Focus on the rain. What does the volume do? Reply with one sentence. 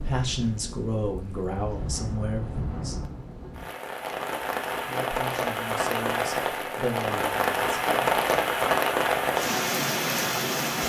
The volume of the rain goes up.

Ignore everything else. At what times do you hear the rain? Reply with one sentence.
You can hear the rain from 0.0 to 10.8 s.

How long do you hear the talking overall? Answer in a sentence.
The talking can be heard for 6 seconds in total.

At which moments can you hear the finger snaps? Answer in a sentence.
The finger snaps can't be heard in this clip.